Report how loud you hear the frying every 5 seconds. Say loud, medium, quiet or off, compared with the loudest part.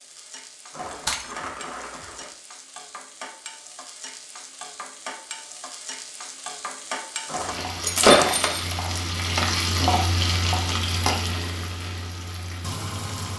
quiet, loud, loud.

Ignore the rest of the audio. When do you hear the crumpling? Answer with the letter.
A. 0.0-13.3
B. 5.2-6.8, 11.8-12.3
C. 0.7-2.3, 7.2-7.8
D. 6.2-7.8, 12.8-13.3
C.